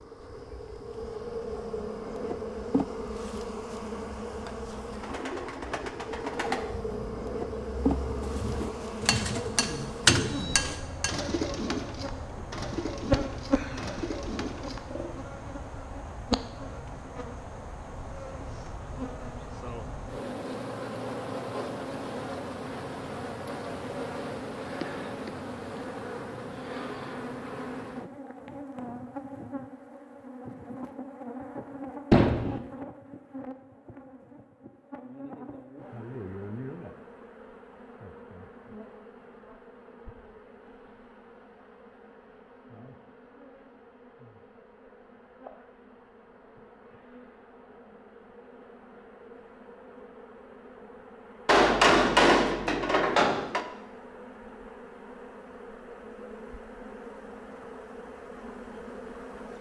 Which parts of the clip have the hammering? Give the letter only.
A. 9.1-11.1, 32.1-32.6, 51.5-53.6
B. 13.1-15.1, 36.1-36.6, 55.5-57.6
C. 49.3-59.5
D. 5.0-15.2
A.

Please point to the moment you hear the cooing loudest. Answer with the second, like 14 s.
10 s.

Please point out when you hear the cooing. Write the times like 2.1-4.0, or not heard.
5.0-15.2.